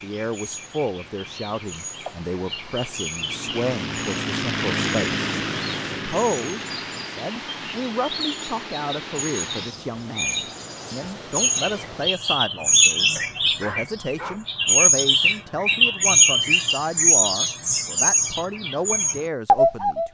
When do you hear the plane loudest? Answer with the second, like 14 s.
5 s.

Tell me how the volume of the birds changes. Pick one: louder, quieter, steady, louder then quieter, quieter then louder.
louder.